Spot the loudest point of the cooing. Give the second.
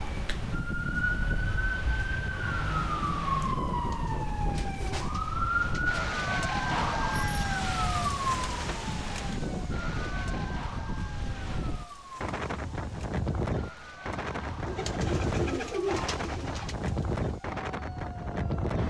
16 s.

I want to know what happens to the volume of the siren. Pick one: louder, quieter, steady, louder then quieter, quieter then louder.
quieter.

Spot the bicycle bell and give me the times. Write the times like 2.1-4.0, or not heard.
7.1-8.2.